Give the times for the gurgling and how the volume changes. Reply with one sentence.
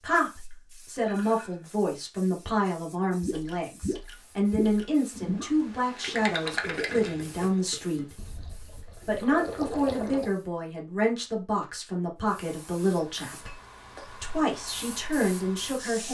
The gurgling can be heard from 3.2 to 10.3 s, getting quieter then louder.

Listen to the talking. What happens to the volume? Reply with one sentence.
The volume of the talking stays about the same.